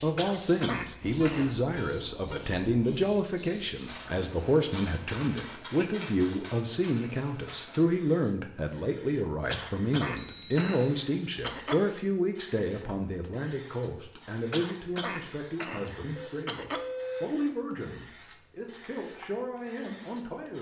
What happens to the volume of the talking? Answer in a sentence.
The loudness of the talking goes down.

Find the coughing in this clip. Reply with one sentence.
The coughing can be heard from 0.1 to 1.6 s, from 9.5 to 11.8 s and from 14.5 to 16.8 s.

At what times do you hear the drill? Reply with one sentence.
You can't hear the drill here.